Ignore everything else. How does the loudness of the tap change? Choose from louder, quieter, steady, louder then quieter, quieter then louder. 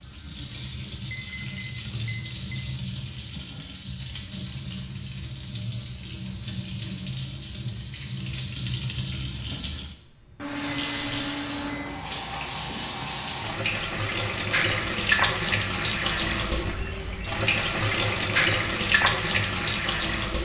louder.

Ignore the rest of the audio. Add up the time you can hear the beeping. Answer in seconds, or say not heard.
4 s.